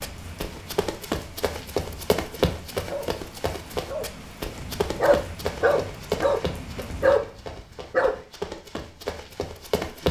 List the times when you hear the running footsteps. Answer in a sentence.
The running footsteps can be heard from 0.0 to 10.0 s.